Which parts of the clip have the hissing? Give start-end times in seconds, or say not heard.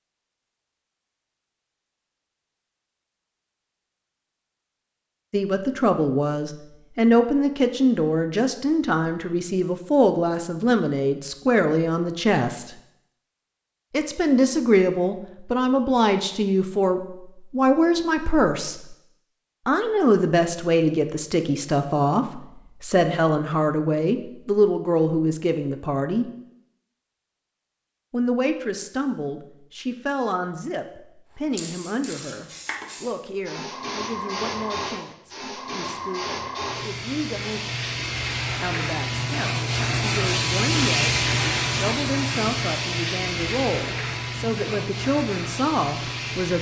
31.5-46.5.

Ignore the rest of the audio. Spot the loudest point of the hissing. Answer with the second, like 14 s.
41 s.